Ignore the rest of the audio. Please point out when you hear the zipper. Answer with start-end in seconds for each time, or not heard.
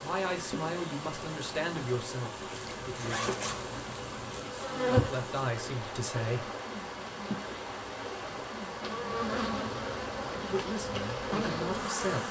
2.5-4.4.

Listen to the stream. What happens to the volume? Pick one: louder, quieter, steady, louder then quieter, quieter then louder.
steady.